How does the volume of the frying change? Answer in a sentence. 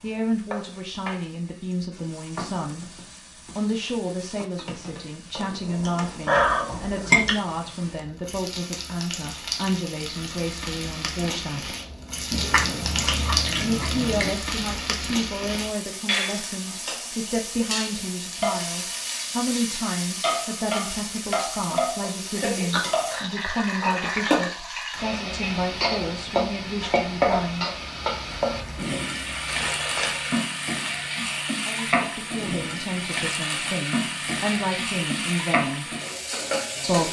The loudness of the frying goes up.